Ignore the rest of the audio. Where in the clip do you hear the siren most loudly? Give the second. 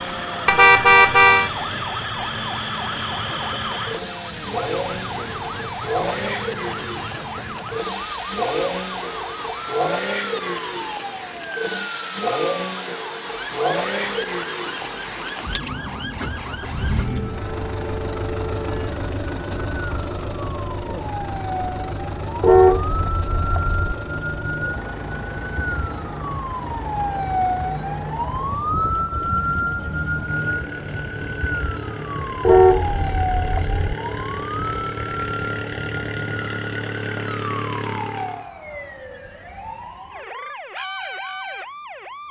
29 s.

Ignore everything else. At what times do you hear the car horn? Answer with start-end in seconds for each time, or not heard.
0.5-1.5, 22.4-23.9, 32.5-33.8.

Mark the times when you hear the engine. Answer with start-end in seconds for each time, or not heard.
0.0-38.5.